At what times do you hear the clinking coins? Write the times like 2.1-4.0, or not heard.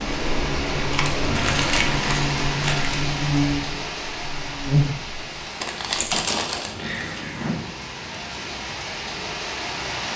0.8-1.2, 6.0-7.7.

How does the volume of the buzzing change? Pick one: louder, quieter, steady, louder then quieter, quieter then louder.
louder.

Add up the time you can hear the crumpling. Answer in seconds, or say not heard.
3 s.